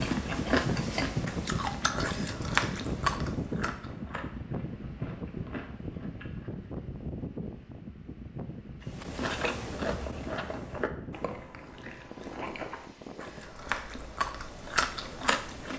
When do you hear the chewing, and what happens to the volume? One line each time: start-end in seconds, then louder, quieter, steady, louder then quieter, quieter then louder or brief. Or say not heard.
0.0-6.8 quieter
8.9-15.7 quieter then louder.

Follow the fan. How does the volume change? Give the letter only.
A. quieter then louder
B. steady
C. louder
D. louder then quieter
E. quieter
E.